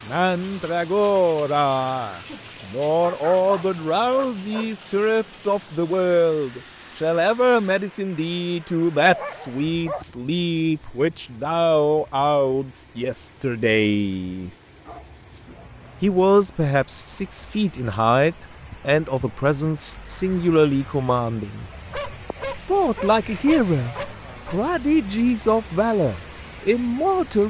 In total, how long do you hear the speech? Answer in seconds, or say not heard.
25 s.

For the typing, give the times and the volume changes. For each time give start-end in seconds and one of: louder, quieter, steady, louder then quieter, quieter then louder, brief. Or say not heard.
not heard.